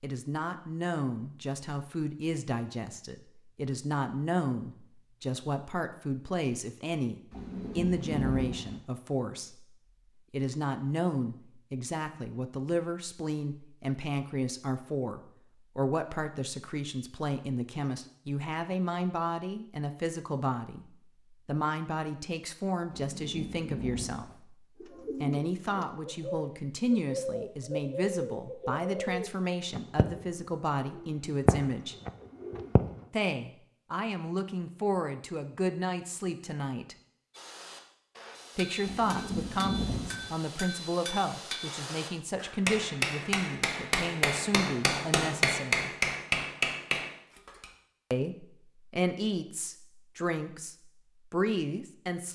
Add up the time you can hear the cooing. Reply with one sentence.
The cooing can be heard for 8 seconds in total.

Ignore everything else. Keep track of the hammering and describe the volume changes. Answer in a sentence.
The loudness of the hammering goes up.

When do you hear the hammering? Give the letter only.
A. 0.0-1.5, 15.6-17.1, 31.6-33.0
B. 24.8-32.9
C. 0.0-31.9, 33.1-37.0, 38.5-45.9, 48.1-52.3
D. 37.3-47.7
D.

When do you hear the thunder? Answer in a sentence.
The thunder can be heard from 7.3 to 8.8 s, from 22.9 to 24.4 s and from 38.9 to 40.3 s.